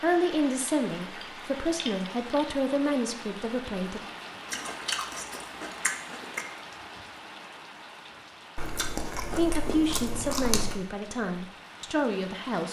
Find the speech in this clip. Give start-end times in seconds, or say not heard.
0.0-4.0, 9.3-12.6.